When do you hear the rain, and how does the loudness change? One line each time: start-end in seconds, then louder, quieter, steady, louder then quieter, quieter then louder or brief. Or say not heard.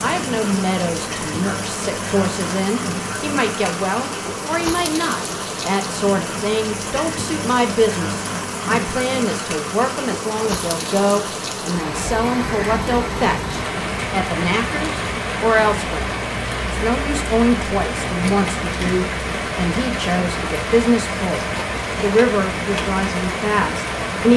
0.0-24.3 steady.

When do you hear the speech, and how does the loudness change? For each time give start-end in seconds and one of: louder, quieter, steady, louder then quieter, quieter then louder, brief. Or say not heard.
0.0-24.3 steady.